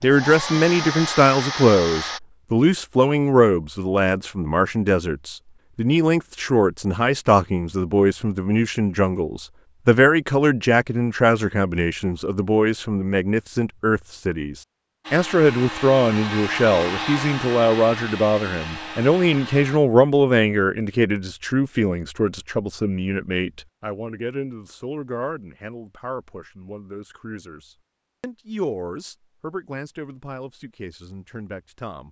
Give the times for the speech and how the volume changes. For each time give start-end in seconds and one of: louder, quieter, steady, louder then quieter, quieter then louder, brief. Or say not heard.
0.0-32.0 quieter.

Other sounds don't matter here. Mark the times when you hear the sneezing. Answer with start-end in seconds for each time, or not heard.
not heard.